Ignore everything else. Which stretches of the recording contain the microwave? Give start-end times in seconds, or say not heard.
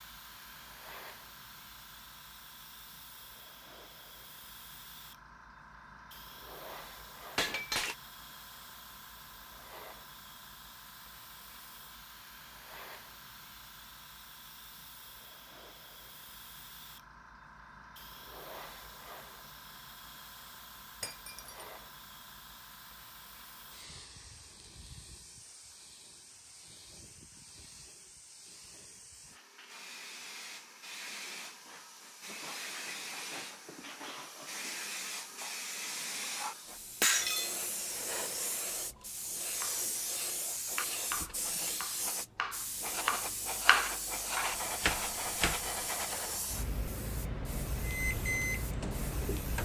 47.8-49.5.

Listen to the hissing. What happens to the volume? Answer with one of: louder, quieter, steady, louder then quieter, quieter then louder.
louder.